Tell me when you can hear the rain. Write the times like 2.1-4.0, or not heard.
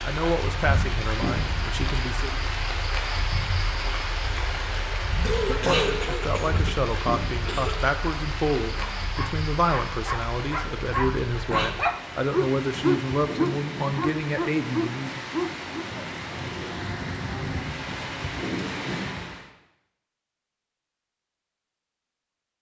0.0-19.5.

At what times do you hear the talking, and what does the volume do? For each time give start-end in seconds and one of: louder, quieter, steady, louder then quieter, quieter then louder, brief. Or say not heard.
0.1-2.3 brief
5.7-15.2 steady.